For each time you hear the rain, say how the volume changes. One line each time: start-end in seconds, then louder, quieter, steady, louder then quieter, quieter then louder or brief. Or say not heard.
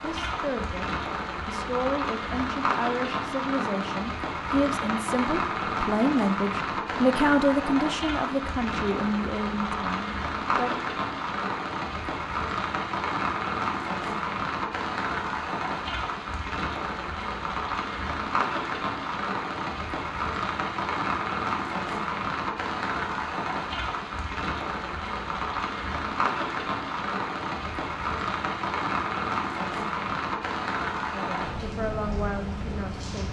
0.0-33.2 steady.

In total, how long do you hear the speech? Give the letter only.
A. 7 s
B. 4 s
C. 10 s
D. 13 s
D.